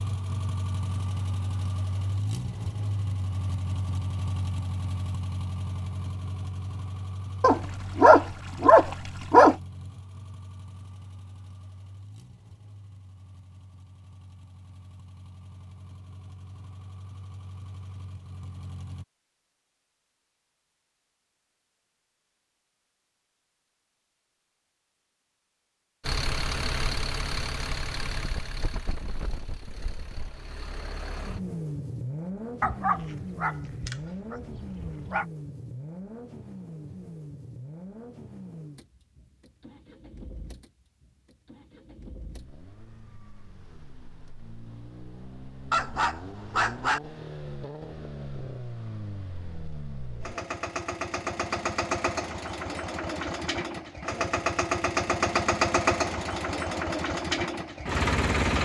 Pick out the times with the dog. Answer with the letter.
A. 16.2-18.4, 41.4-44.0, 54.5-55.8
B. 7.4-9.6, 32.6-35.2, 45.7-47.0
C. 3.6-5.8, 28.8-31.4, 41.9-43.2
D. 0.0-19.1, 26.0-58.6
B.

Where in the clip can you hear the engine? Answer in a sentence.
The engine can be heard from 0.0 to 19.1 s and from 26.0 to 58.6 s.